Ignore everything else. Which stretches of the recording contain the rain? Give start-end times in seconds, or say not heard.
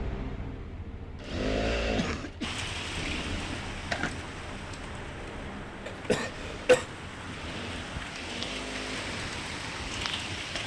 2.4-10.6.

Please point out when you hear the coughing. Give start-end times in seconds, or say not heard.
1.9-2.5, 5.8-6.8.